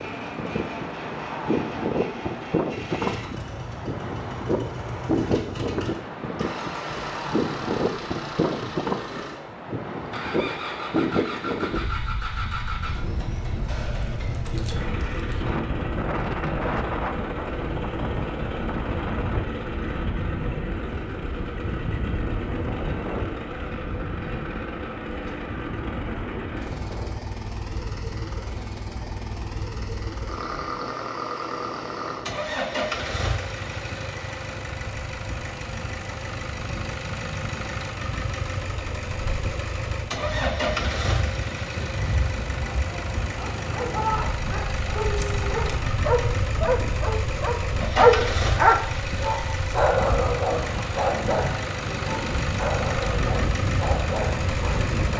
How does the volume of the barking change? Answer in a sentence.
The volume of the barking goes up, then down.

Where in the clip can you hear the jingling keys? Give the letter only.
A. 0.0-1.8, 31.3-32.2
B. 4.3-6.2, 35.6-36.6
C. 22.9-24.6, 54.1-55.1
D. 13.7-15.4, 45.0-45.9
D.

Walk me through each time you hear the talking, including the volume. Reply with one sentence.
You can't hear the talking here.